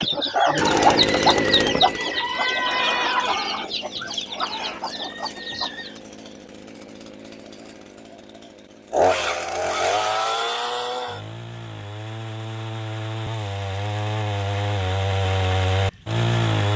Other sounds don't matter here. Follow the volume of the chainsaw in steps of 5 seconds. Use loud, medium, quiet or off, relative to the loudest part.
loud, loud, medium, loud.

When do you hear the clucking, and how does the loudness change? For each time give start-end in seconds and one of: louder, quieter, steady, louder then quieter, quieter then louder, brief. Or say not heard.
0.0-6.0 quieter.